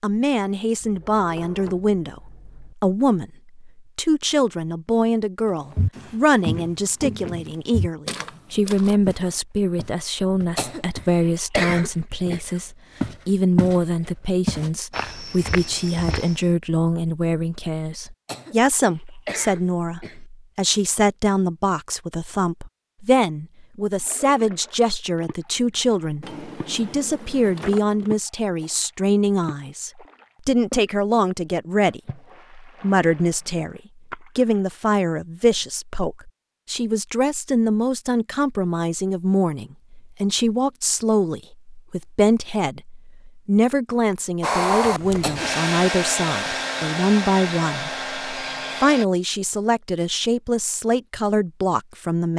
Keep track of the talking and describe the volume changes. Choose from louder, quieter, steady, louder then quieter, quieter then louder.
steady.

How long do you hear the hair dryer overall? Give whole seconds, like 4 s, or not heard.
5 s.